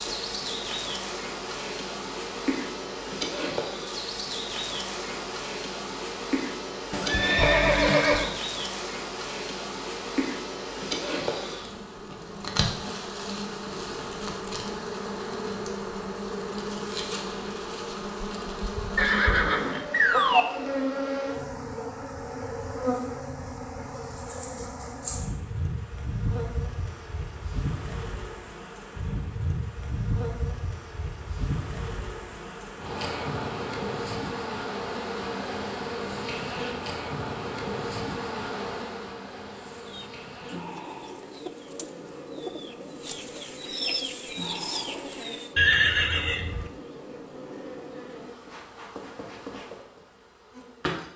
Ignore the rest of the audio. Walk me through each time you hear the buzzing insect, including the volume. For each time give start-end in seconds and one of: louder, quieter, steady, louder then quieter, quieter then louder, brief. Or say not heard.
0.0-51.1 quieter.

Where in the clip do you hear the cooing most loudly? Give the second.
44 s.